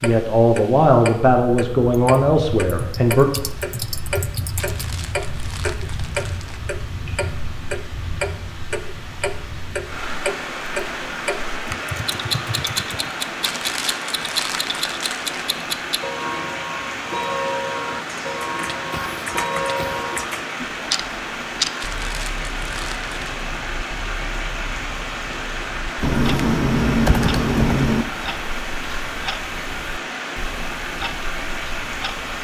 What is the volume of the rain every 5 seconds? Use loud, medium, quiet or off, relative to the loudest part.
medium, medium, loud, loud, loud, loud, loud.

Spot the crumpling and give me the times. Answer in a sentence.
You can hear the crumpling from 4.5 to 6.6 s, from 13.4 to 15.4 s and from 21.8 to 23.4 s.